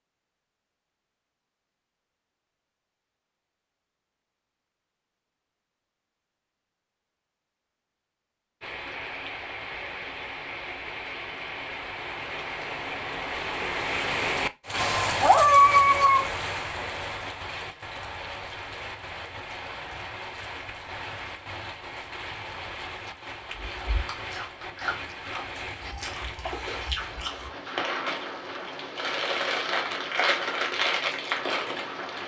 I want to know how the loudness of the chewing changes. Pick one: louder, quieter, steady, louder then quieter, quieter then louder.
louder.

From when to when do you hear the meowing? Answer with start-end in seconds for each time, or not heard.
14.8-16.3.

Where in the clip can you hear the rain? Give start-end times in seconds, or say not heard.
8.6-32.2.